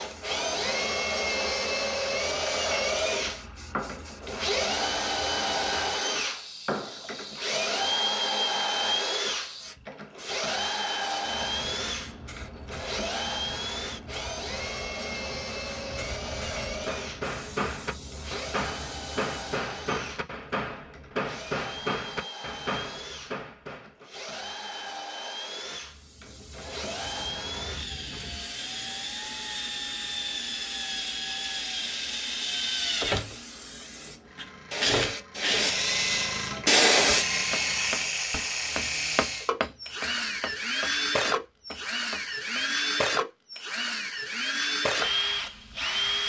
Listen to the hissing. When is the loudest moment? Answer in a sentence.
The loudest moment of the hissing is at 37 seconds.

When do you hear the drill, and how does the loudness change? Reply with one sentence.
You can hear the drill from 0.0 to 46.2 s, getting quieter then louder.